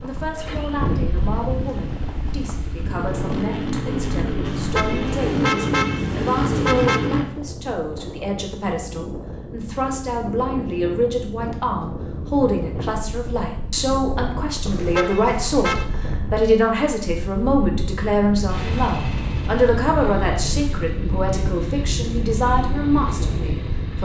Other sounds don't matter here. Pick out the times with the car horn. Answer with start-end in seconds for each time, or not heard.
4.5-7.1, 14.7-15.8.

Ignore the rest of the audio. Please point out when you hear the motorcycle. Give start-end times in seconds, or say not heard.
0.2-7.2, 18.4-24.0.